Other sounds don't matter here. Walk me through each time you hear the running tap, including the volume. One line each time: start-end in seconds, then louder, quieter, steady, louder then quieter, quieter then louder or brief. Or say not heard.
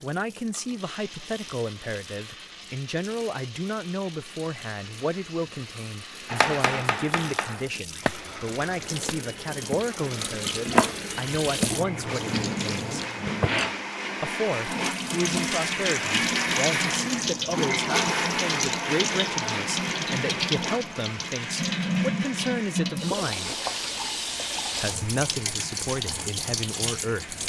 0.0-27.4 louder.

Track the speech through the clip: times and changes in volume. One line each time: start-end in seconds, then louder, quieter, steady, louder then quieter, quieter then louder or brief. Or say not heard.
0.0-12.9 steady
14.2-23.6 steady
24.8-27.4 brief.